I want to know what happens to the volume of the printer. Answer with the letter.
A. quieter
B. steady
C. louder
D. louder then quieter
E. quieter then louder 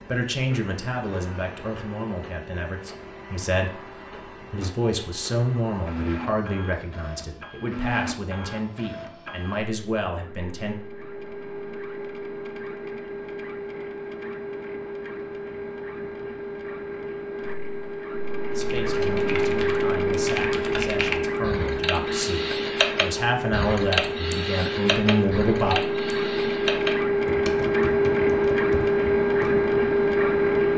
C.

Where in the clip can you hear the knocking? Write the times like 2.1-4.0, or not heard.
not heard.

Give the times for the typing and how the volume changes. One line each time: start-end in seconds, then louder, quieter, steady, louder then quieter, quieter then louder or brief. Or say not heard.
18.5-29.6 louder then quieter.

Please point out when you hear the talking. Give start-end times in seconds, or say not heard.
0.1-10.8, 18.5-25.8.